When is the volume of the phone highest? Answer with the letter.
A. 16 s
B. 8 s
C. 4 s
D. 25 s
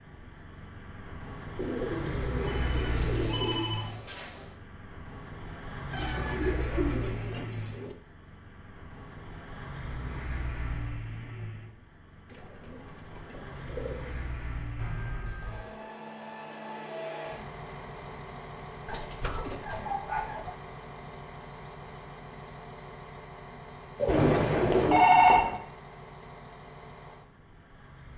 D.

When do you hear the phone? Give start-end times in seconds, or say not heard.
2.4-4.5, 14.8-15.7, 24.1-25.6.